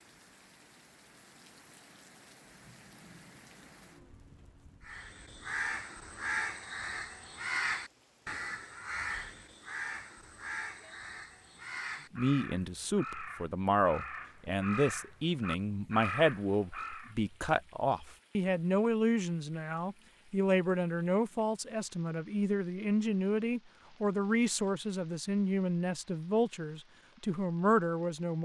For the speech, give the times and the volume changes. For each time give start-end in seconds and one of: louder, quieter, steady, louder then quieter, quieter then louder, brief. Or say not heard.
12.1-28.4 steady.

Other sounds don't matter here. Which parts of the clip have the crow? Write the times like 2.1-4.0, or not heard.
4.8-17.1.